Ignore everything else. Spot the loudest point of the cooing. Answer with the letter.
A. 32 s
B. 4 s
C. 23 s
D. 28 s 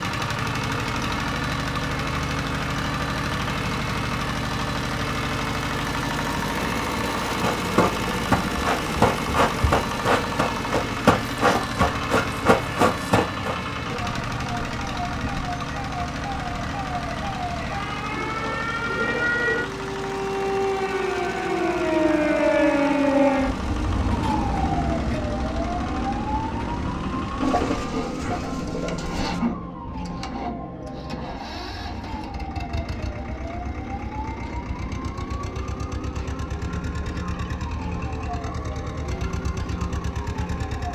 D.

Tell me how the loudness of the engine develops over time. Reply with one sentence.
The loudness of the engine goes down.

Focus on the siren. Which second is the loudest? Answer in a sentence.
The loudest moment of the siren is at 23 seconds.